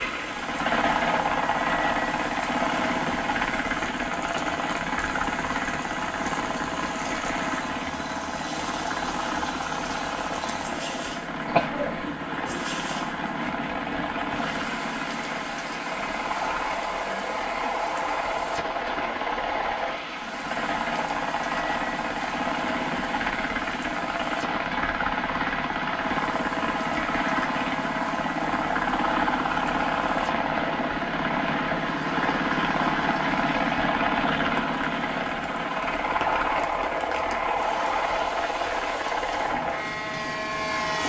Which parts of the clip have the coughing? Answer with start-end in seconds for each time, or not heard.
11.4-12.1.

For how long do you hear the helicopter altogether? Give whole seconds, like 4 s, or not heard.
41 s.